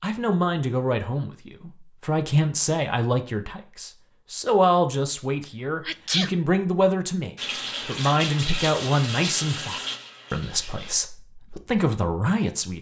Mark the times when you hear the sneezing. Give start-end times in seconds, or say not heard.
5.4-6.3.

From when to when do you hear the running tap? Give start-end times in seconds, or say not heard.
7.3-10.9.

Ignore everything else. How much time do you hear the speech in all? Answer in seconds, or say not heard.
13 s.